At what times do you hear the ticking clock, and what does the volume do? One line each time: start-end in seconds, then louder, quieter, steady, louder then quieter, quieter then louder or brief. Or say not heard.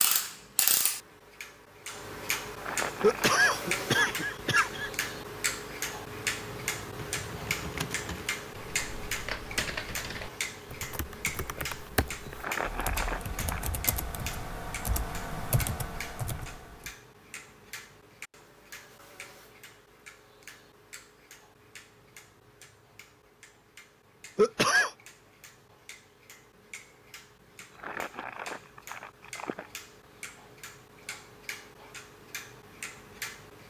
0.0-33.6 quieter then louder.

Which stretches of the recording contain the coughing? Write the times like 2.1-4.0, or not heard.
3.0-4.9, 24.4-24.9.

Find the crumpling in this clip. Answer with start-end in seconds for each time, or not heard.
2.5-3.5, 12.3-13.7, 27.7-29.7.